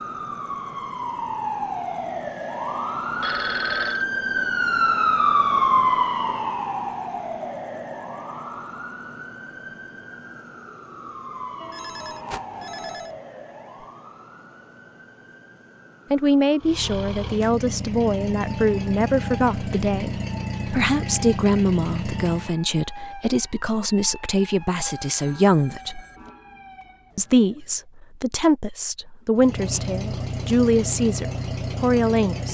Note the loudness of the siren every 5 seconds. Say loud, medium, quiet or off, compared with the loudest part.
loud, loud, quiet, quiet, quiet, quiet, off.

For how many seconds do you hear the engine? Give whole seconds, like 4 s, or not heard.
9 s.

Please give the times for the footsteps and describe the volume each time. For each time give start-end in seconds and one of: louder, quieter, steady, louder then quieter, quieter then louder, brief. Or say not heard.
not heard.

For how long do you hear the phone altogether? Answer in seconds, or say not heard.
4 s.